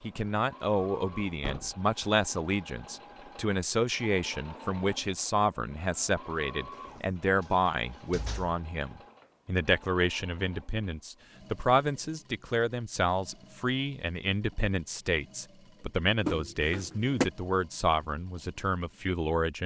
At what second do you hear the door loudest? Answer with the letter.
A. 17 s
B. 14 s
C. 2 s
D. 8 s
A.